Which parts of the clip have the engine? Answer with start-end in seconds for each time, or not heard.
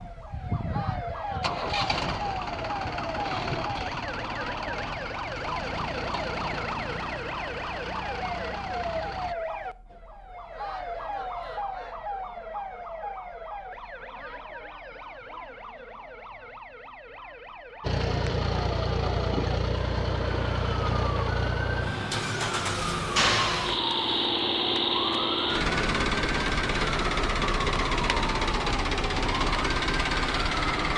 0.0-9.3, 17.8-30.9.